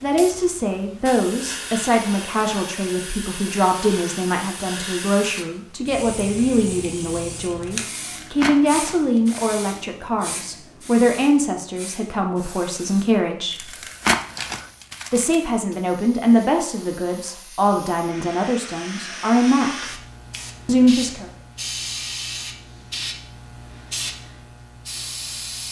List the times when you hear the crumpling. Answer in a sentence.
You can hear the crumpling from 8.1 to 9.4 s and from 13.5 to 15.3 s.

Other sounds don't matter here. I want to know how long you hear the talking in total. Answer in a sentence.
You can hear the talking for 19 seconds altogether.